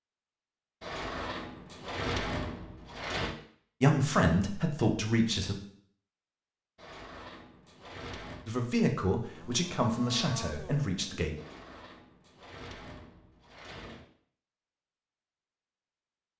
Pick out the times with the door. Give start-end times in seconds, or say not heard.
0.8-3.4, 6.8-8.5, 11.3-14.1.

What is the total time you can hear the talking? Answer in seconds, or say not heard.
5 s.